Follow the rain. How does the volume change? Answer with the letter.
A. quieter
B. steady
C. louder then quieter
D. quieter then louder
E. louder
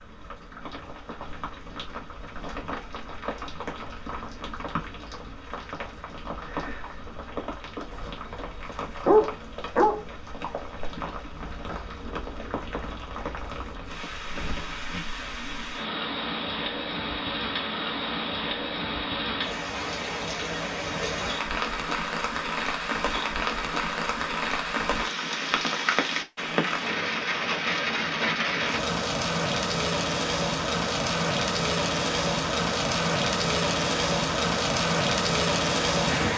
E.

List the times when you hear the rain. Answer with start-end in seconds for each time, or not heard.
0.0-36.3.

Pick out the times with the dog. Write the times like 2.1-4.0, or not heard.
7.9-8.4, 9.1-10.0.